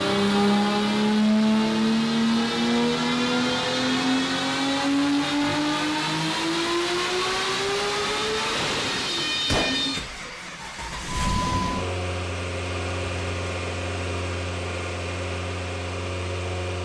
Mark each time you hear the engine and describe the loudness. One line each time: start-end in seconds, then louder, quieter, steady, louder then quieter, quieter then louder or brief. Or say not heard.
0.0-16.8 quieter.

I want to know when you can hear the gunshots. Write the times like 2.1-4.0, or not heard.
9.4-9.8.